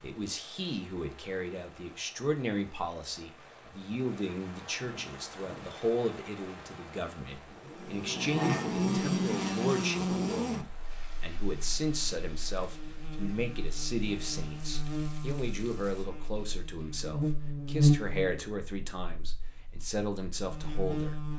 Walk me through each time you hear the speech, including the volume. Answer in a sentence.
The speech can be heard from 0.0 to 21.2 s, at a steady volume.